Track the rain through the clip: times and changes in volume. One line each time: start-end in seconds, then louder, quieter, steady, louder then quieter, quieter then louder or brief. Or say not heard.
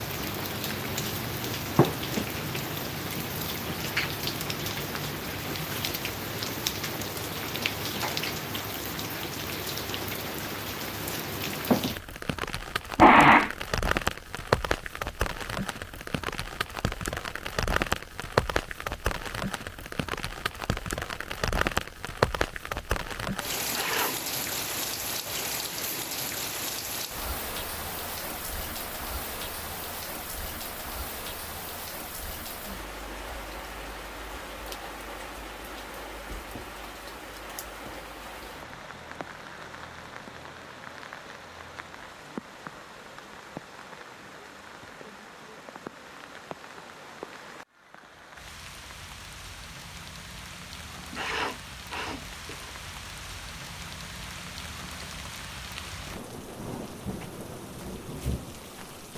0.0-59.1 quieter.